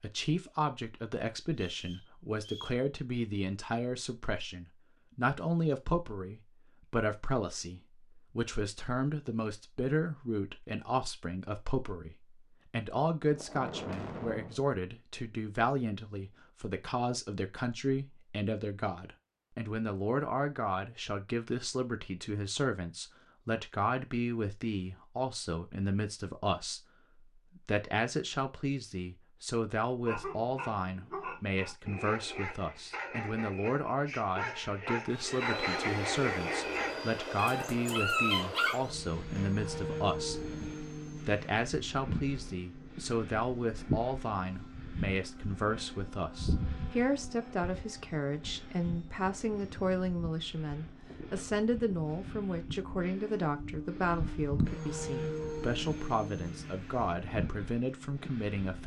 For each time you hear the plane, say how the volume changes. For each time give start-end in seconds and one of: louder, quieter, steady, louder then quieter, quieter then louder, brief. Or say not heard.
35.1-58.8 quieter then louder.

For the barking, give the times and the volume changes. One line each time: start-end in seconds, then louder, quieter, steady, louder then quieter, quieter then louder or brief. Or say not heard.
30.1-38.8 louder.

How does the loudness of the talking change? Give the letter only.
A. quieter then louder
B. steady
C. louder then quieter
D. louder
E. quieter
B.